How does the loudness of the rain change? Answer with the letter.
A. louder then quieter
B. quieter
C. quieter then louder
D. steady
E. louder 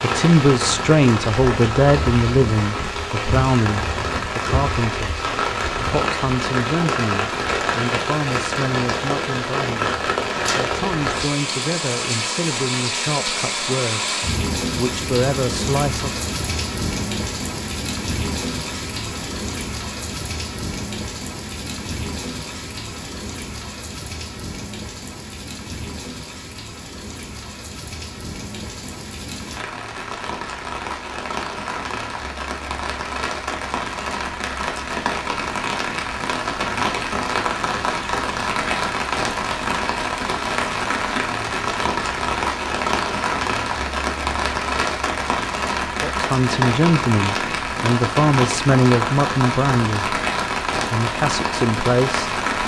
C.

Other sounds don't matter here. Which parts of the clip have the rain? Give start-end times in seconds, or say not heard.
0.0-52.6.